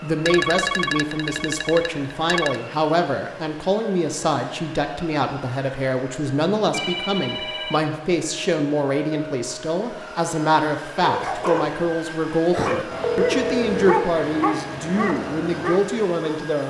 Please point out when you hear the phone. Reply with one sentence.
You can hear the phone from 0.2 to 2.6 s, from 6.7 to 8.0 s and from 13.2 to 13.9 s.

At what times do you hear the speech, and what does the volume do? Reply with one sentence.
You can hear the speech from 0.0 to 16.6 s, at a steady volume.